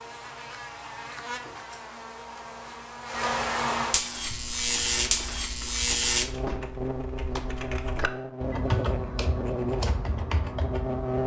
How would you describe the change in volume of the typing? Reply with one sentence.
The volume of the typing goes up.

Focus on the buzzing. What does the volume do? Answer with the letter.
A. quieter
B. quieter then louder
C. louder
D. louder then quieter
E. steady
D.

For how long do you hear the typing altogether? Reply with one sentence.
The typing can be heard for 7 seconds in total.